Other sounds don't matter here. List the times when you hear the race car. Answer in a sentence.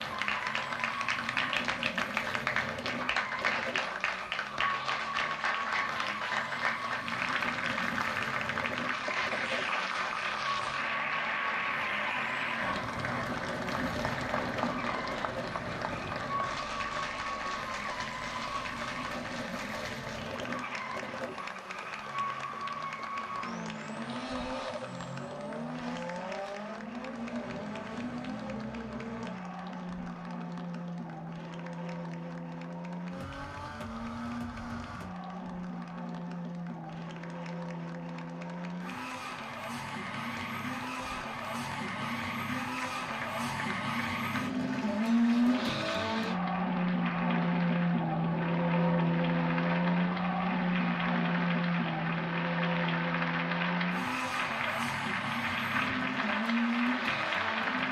The race car can be heard from 0.0 to 57.8 s.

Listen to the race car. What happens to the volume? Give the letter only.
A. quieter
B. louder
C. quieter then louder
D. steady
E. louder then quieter
B.